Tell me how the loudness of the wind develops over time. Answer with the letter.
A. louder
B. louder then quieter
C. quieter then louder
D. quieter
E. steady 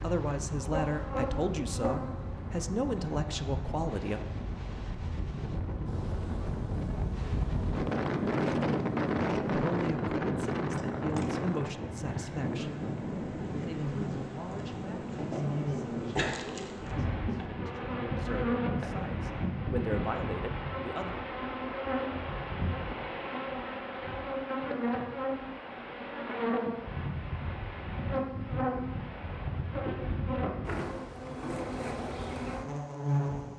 B.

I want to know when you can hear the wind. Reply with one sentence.
The wind can be heard from 0.0 to 19.6 s.